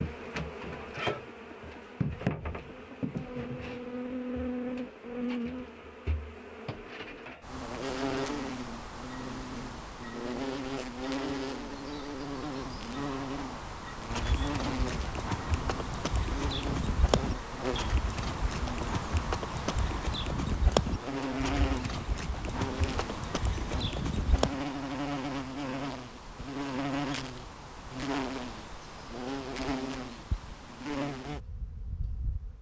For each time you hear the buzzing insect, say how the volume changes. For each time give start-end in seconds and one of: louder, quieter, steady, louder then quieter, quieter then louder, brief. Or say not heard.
0.0-32.5 steady.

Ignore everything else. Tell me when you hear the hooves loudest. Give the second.
21 s.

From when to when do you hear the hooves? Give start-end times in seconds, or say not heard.
14.1-24.6.